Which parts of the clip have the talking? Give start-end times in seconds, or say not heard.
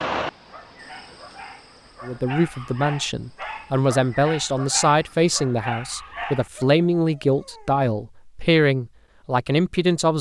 2.0-10.1.